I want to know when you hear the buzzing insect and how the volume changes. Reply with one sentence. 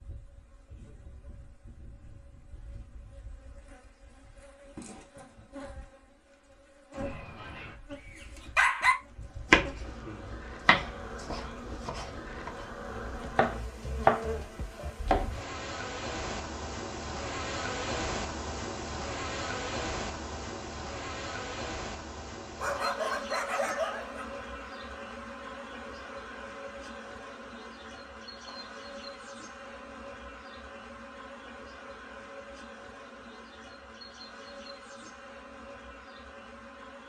You can hear the buzzing insect from 0.0 to 37.0 s, getting louder then quieter.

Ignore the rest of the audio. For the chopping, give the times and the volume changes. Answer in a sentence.
The chopping can be heard from 9.5 to 15.3 s, getting quieter then louder.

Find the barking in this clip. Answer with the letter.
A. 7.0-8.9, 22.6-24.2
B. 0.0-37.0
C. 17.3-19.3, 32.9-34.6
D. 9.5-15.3
A.